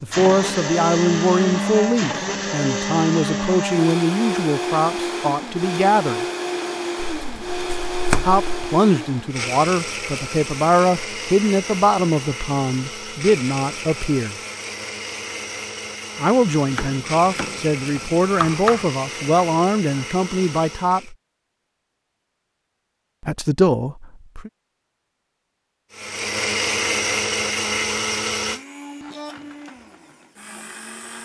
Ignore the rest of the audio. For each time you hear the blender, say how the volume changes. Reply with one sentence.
The blender can be heard from 0.0 to 21.1 s, getting quieter; and from 25.9 to 31.2 s, getting quieter.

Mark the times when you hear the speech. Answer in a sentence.
The speech can be heard from 0.0 to 6.2 s, from 8.2 to 14.3 s, from 16.1 to 21.1 s and from 23.2 to 24.5 s.